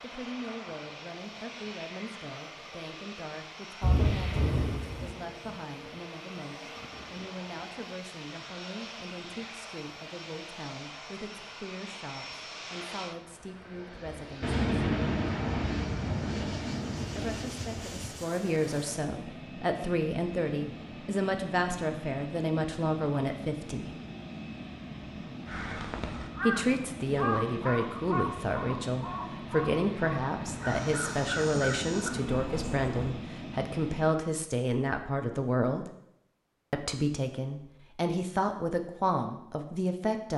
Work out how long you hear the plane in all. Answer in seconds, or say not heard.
34 s.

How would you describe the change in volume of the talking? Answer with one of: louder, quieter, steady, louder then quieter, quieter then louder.
louder.